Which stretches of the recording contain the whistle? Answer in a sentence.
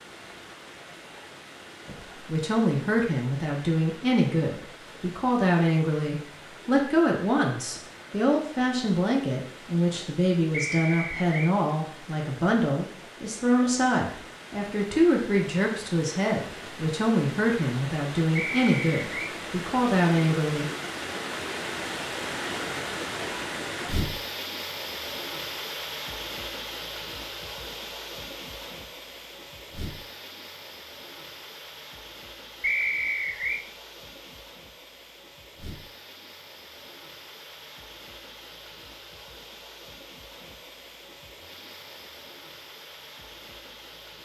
The whistle can be heard from 10.5 to 11.6 s, from 18.4 to 19.4 s and from 32.6 to 33.6 s.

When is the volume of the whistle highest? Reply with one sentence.
The volume of the whistle peaks at 33 seconds.